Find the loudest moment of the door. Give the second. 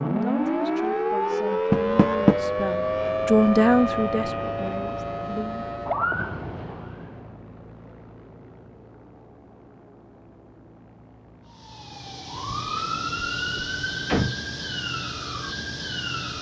2 s.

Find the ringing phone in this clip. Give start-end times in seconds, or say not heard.
not heard.